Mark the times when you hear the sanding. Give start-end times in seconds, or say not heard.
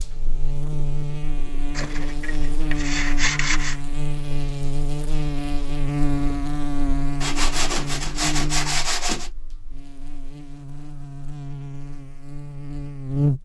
1.8-3.8, 7.2-9.3.